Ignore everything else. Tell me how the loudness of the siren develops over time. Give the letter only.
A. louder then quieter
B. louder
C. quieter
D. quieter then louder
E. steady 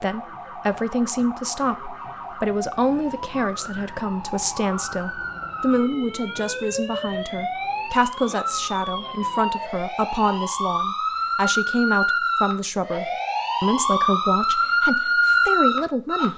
B.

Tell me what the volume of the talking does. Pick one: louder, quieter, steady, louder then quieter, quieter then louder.
steady.